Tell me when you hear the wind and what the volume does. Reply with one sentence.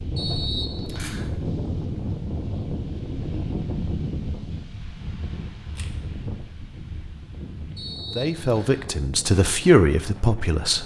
The wind can be heard from 0.0 to 10.8 s, getting quieter.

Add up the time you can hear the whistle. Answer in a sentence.
The whistle can be heard for 2 seconds in total.